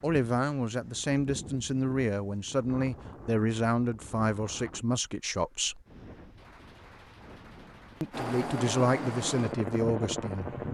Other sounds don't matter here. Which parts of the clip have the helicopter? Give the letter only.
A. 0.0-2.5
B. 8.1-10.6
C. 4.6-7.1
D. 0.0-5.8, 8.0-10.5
B.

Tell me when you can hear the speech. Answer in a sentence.
You can hear the speech from 0.0 to 5.8 s and from 8.0 to 10.5 s.